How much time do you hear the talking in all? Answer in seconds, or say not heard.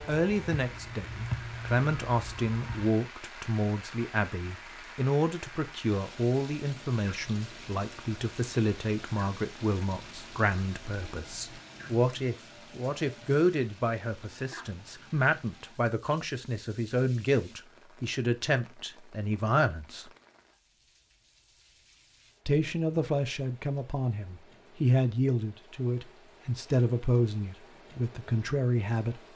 27 s.